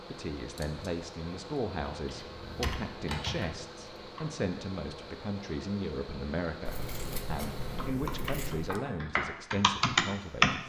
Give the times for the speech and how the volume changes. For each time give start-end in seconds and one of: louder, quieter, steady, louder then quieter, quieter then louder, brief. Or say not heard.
0.1-10.6 steady.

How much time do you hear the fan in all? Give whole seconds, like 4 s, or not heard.
8 s.